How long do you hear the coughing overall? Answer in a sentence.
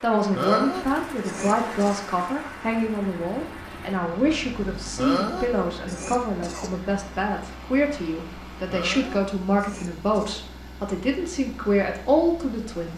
You can hear the coughing for 5 seconds altogether.